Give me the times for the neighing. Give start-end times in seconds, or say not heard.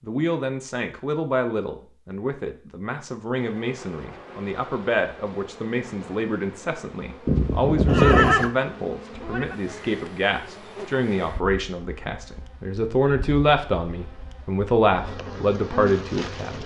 7.2-8.5.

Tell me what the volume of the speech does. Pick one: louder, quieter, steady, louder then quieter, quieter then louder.
louder.